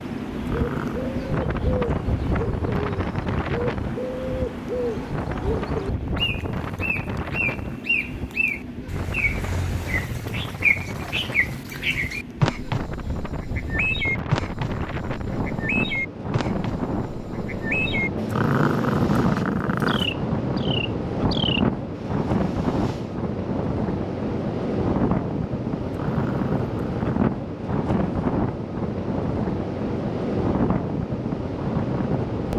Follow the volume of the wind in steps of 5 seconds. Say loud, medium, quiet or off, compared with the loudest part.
loud, medium, medium, loud, loud, loud, loud.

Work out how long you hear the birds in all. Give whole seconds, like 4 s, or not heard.
23 s.